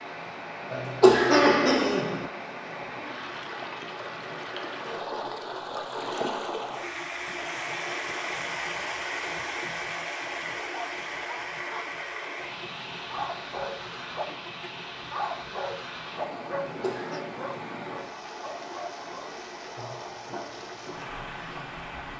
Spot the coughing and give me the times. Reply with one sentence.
The coughing can be heard from 0.7 to 2.2 s and from 16.6 to 17.2 s.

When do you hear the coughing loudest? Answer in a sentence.
The volume of the coughing peaks at 1 second.